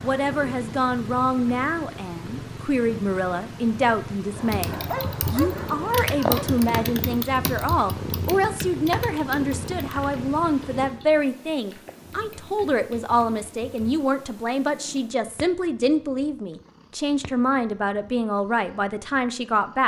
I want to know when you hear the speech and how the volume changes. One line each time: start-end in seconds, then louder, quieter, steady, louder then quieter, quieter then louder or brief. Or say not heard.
0.0-19.8 steady.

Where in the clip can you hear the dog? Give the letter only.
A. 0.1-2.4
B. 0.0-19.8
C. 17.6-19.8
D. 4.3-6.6
D.